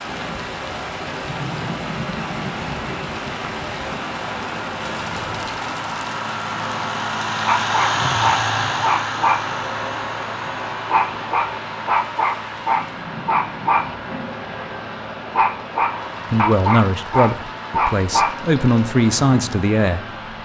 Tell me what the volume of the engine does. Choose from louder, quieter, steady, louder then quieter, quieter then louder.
louder then quieter.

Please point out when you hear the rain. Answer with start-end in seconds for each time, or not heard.
0.0-20.4.